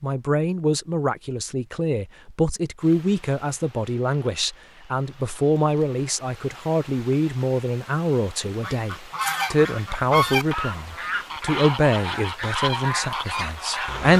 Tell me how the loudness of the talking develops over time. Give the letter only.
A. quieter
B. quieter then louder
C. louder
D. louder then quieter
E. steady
E.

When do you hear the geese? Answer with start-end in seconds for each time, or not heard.
8.6-14.1.